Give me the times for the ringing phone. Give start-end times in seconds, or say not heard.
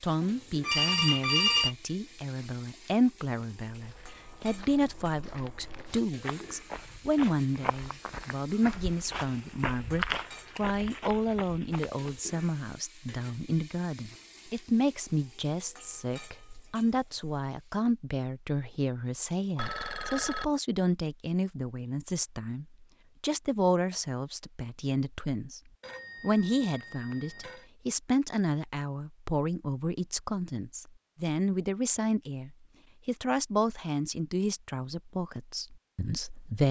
0.2-1.8, 19.6-20.4, 25.8-27.6.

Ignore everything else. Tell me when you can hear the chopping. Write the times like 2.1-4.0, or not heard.
not heard.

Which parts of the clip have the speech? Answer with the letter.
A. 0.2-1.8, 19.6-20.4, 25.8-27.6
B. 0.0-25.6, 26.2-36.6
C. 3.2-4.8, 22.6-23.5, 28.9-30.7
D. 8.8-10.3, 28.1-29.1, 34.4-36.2
B.